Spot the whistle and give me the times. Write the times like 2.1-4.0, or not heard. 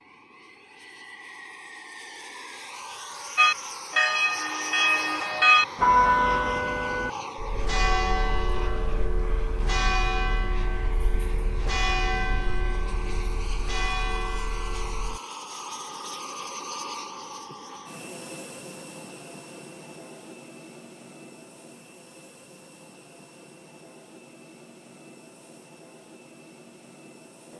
not heard.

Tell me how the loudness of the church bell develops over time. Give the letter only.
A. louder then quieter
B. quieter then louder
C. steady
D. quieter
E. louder
D.